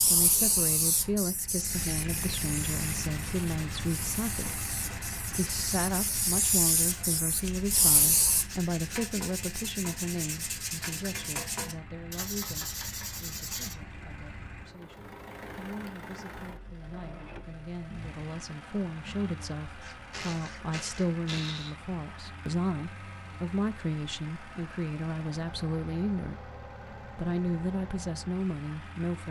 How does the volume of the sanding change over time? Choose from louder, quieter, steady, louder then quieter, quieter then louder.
louder.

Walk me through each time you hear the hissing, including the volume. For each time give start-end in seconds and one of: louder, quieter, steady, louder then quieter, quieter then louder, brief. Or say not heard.
0.0-8.4 quieter then louder.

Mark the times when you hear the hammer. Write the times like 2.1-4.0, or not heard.
not heard.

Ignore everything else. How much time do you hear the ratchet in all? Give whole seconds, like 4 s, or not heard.
2 s.